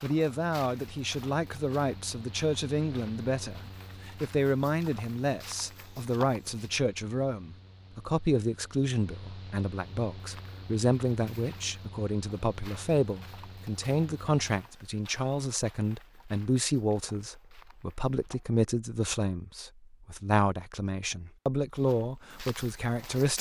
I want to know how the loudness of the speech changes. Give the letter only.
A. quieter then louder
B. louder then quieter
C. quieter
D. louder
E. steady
E.